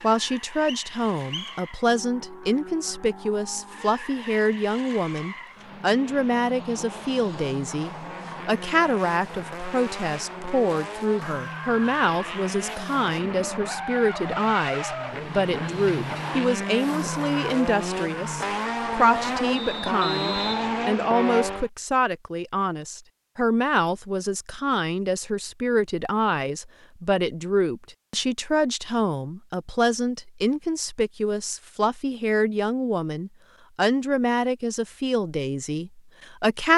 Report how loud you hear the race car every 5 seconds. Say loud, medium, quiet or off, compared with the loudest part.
quiet, medium, medium, loud, loud, off, off, off.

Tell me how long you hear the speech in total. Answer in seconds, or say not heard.
37 s.